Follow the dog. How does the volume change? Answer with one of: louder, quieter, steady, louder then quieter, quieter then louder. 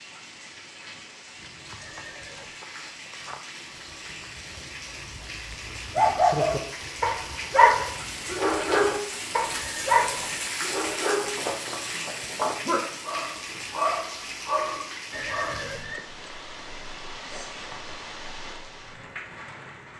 quieter.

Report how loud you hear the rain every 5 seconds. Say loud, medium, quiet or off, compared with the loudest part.
medium, loud, loud, medium.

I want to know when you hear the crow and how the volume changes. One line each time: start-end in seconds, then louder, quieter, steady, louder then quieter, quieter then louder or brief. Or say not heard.
not heard.